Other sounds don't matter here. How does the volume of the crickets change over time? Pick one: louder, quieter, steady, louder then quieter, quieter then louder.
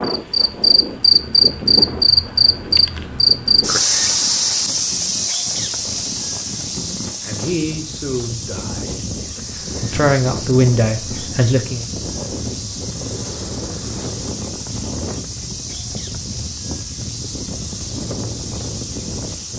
quieter.